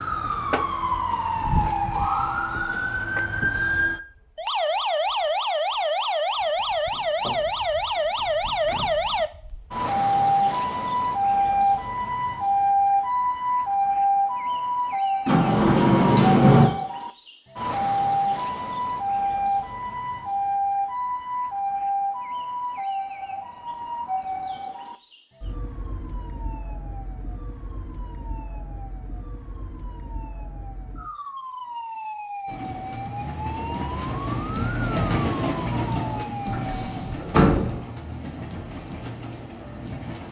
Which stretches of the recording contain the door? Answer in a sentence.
You can hear the door from 6.9 to 8.8 s, from 15.2 to 16.7 s and from 36.5 to 37.9 s.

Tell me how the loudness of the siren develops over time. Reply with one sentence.
The loudness of the siren goes down.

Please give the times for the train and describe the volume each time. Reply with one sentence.
The train can be heard from 32.5 to 40.2 s, getting louder then quieter.